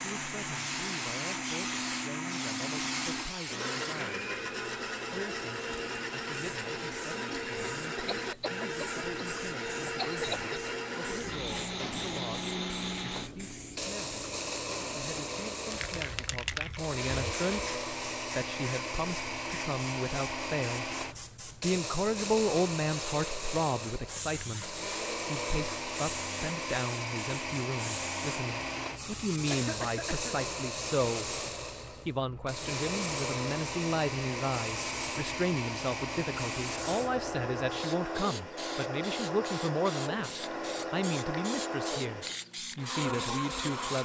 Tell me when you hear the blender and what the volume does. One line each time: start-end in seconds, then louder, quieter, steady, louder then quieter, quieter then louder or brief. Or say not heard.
0.0-44.0 steady.